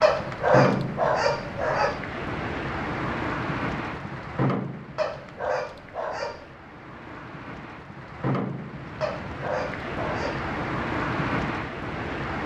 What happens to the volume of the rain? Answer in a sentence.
The loudness of the rain goes down, then up.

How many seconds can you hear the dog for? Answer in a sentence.
The dog can be heard for 5 seconds in total.